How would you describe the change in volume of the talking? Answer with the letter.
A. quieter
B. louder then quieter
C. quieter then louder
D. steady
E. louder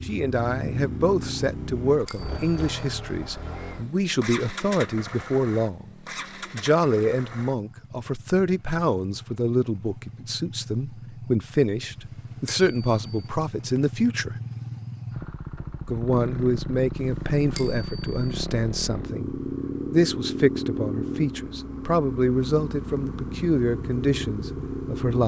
D.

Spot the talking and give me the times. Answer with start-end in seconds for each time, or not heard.
0.0-5.9, 6.5-14.3, 15.8-25.2.